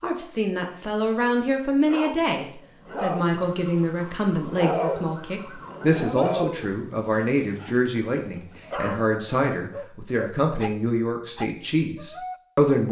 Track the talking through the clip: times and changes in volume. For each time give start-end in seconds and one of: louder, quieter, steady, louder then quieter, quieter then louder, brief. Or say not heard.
0.0-12.8 steady.